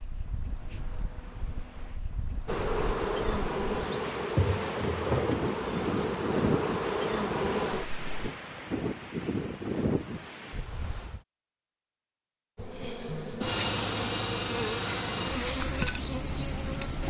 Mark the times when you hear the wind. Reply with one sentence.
The wind can be heard from 0.0 to 11.2 s.